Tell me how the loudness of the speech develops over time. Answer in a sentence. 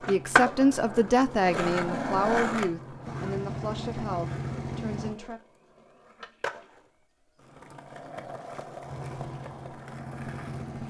The loudness of the speech goes down.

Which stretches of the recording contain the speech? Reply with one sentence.
The speech can be heard from 0.1 to 5.4 s.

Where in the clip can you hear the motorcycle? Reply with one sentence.
You can hear the motorcycle from 0.0 to 5.2 s and from 8.8 to 10.8 s.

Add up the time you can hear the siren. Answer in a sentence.
You can't hear the siren here.